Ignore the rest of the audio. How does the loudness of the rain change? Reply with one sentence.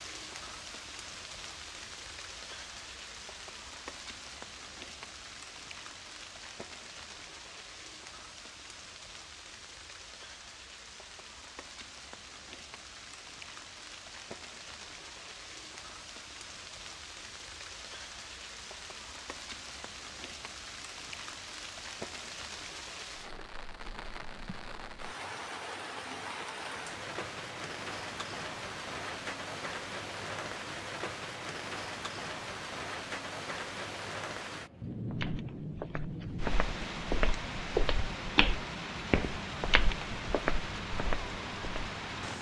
The loudness of the rain goes up.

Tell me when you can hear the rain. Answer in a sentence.
You can hear the rain from 0.0 to 42.3 s.